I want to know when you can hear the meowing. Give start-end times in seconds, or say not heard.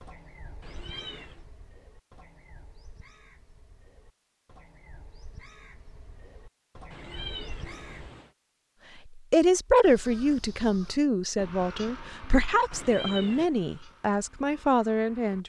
0.6-1.4, 6.9-8.3, 12.7-13.5.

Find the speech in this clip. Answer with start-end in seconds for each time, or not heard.
9.2-15.4.